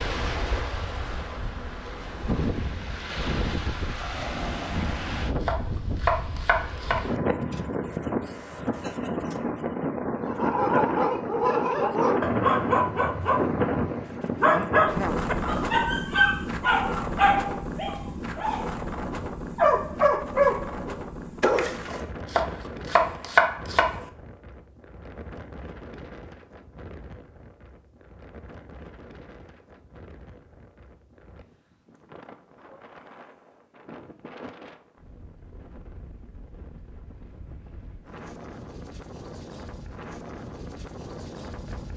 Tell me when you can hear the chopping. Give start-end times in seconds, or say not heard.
5.4-7.0, 22.2-24.0.